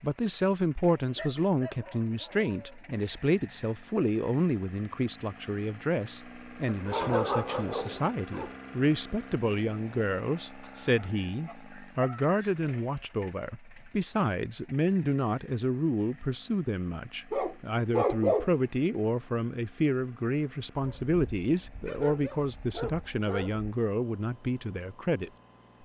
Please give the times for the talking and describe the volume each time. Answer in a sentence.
The talking can be heard from 0.0 to 25.3 s, at a steady volume.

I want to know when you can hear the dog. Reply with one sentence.
The dog can be heard from 1.1 to 3.0 s, from 6.7 to 8.6 s, from 10.6 to 12.7 s, from 17.3 to 18.5 s and from 20.8 to 23.7 s.